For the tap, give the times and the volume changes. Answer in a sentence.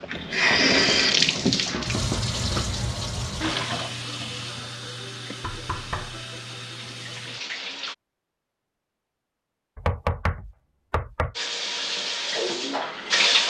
The tap can be heard from 0.0 to 8.0 s, getting quieter; and briefly from 11.3 to 13.4 s.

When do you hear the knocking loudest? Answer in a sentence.
The loudest moment of the knocking is at 10 seconds.